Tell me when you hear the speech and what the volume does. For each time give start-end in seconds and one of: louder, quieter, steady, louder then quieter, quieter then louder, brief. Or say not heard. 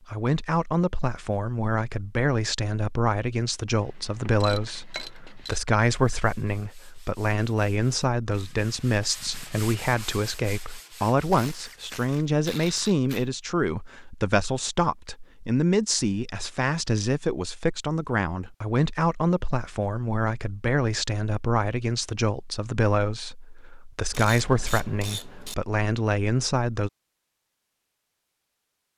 0.1-26.9 steady.